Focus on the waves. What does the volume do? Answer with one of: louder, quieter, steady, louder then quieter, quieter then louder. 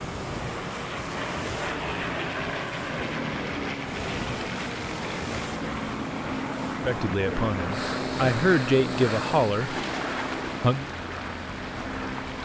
steady.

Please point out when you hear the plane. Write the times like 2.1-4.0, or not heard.
0.1-12.4.